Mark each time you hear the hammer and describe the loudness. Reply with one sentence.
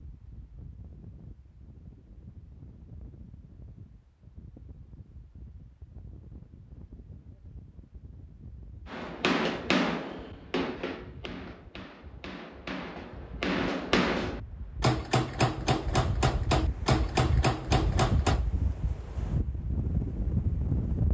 The hammer can be heard from 8.8 to 18.4 s, getting quieter then louder.